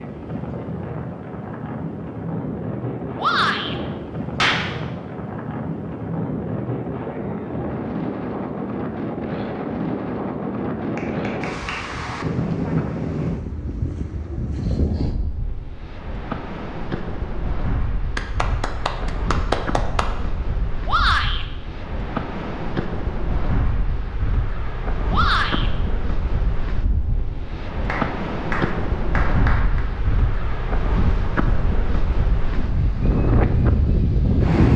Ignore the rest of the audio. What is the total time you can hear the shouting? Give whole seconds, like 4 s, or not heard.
2 s.